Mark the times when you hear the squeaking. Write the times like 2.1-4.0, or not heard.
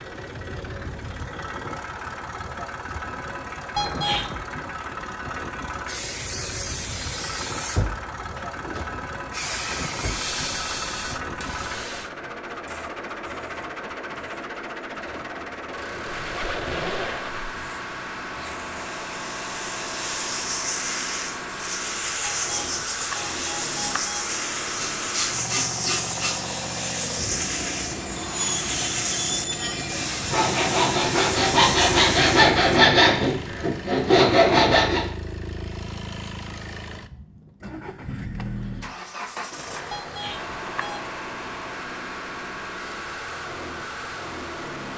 16.1-17.5.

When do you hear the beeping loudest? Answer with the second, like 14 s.
4 s.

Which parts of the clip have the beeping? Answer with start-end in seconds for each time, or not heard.
3.8-4.5, 22.2-24.2, 39.9-41.0.